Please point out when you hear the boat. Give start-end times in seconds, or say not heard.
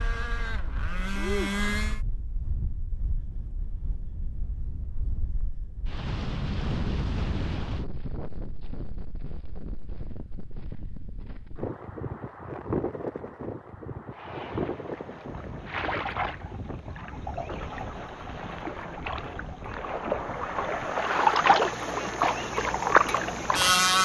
0.0-2.0, 14.1-23.9.